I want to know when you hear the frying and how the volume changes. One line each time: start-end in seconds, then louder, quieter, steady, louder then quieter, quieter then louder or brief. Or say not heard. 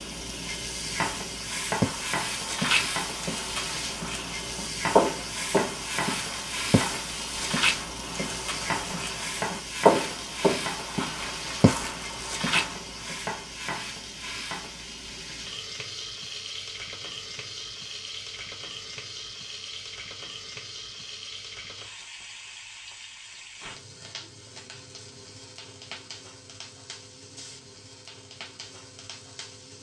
0.0-29.7 quieter.